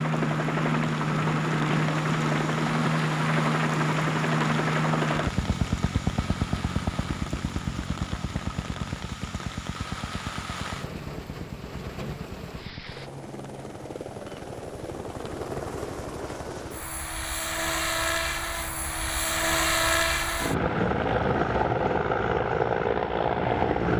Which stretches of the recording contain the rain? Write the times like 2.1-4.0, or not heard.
0.0-13.1.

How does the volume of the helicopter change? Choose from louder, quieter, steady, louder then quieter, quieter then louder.
quieter then louder.